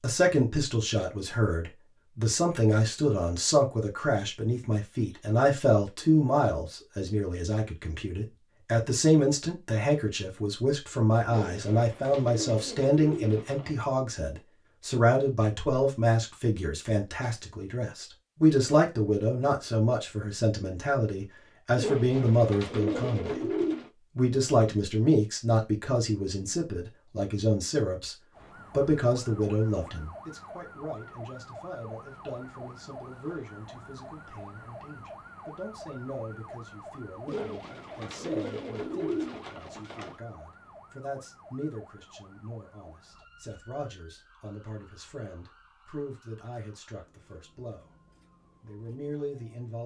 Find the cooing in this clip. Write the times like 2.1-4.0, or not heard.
11.3-13.8, 21.8-23.9, 37.2-40.1.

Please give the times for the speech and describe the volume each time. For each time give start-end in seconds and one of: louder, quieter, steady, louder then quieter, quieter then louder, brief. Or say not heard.
0.0-23.5 steady
24.1-47.9 quieter
48.6-49.8 brief.